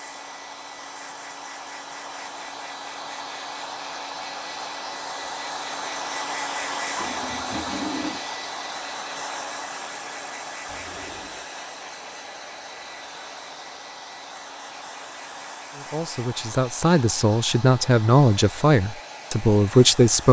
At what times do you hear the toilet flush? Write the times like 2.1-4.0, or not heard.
7.0-8.2, 10.7-11.4.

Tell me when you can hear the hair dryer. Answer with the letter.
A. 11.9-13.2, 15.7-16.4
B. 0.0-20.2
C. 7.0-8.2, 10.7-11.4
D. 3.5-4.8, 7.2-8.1
B.